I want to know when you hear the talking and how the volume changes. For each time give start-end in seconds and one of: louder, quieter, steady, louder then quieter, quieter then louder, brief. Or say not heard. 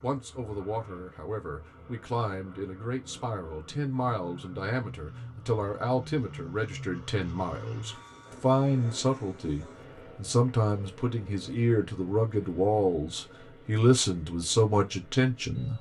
0.0-15.7 louder.